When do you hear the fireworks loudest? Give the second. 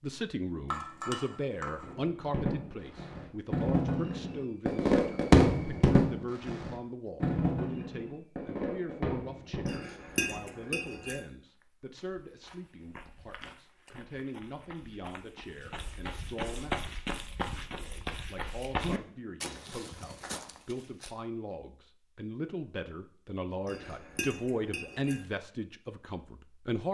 5 s.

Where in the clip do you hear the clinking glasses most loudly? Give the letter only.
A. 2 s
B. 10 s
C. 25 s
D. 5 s
B.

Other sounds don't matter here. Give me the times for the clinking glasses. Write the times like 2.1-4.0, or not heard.
0.7-1.9, 9.7-11.2, 23.6-25.2.